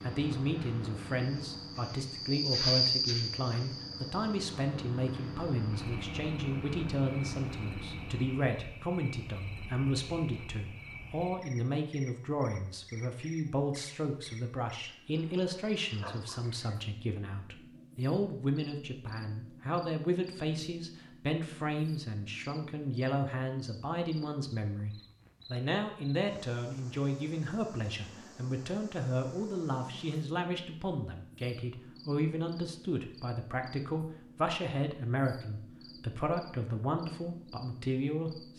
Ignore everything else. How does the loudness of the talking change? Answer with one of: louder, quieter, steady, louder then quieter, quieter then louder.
steady.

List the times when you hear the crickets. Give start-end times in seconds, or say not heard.
0.0-38.5.